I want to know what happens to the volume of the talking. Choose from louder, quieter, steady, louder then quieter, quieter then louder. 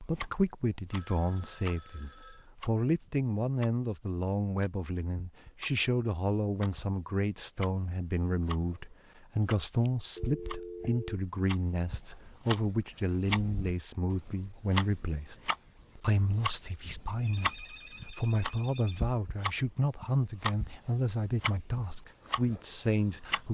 steady.